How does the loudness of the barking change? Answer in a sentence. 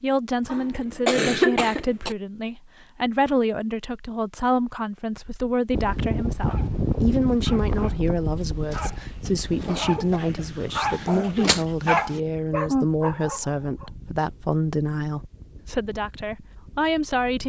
The loudness of the barking goes up.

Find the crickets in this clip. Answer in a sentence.
You can't hear the crickets here.